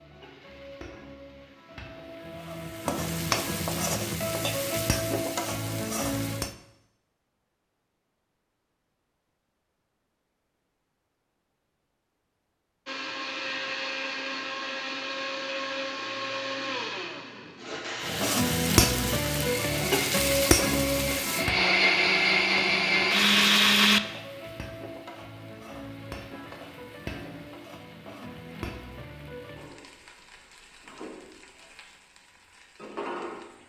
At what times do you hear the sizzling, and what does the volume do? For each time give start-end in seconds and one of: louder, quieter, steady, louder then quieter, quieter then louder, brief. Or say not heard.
0.0-6.5 louder
18.0-33.6 quieter.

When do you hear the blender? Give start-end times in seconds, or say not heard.
12.8-24.0.